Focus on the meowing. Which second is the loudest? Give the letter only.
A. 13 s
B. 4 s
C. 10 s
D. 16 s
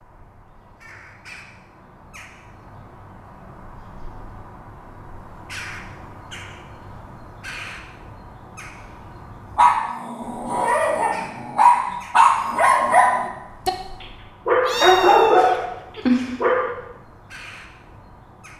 D.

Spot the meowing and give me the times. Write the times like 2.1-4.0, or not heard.
14.6-16.4.